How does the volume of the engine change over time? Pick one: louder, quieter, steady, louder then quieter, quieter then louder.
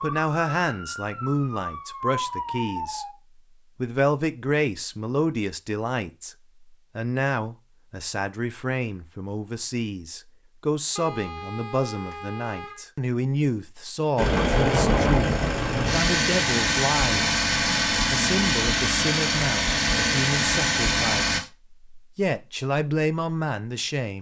steady.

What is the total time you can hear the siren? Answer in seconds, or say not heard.
3 s.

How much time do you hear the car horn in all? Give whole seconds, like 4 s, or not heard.
2 s.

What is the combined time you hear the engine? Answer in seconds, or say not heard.
7 s.